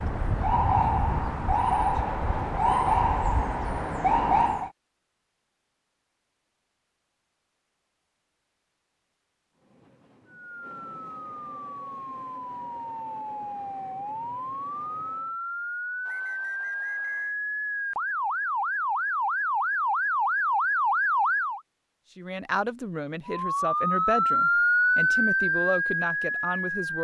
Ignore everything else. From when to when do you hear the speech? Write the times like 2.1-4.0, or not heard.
22.1-26.9.